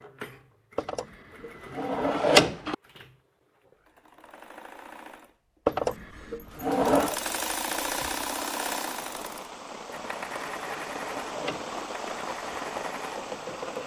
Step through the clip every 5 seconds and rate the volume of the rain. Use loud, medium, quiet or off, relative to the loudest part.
off, medium, loud.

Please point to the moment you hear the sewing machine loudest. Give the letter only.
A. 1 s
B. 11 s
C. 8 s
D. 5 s
C.